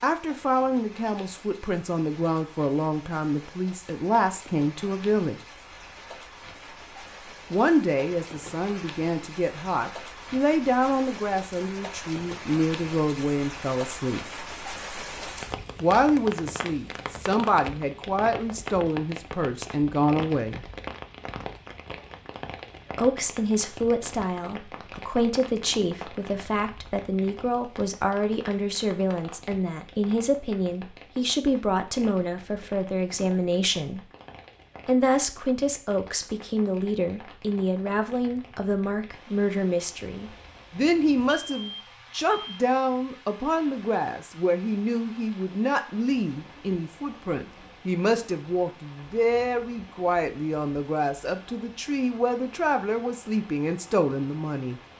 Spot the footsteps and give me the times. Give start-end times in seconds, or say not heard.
not heard.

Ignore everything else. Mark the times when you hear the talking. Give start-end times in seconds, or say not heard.
0.0-5.3, 7.5-14.2, 15.8-20.6, 22.9-34.0, 34.9-54.8.